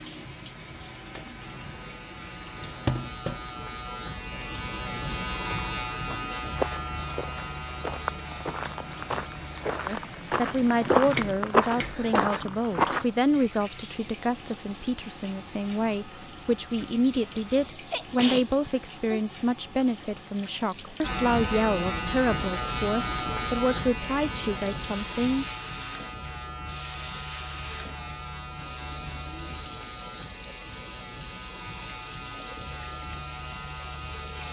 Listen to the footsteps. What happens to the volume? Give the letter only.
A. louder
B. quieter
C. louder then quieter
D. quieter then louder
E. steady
A.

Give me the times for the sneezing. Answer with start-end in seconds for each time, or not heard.
17.9-19.2.